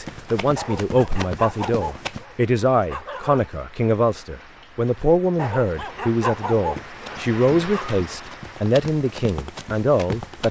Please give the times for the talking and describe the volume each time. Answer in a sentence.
The talking can be heard from 0.0 to 10.4 s, at a steady volume.